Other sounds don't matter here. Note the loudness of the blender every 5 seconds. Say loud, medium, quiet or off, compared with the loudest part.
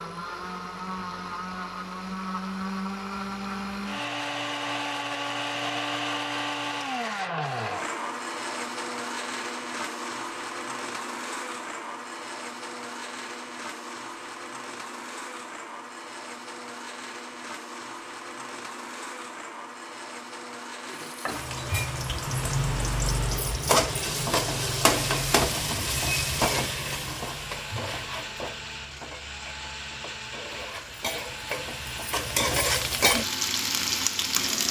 loud, loud, medium, medium, medium, medium, medium.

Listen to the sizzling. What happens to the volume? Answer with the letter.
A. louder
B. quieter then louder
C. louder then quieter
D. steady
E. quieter
B.